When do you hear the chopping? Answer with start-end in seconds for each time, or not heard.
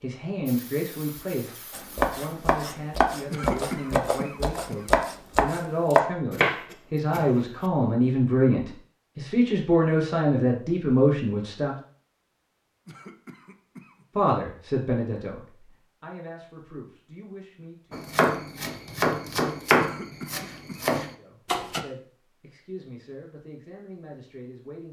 1.7-7.2, 17.9-21.8.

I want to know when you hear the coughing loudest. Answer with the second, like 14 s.
4 s.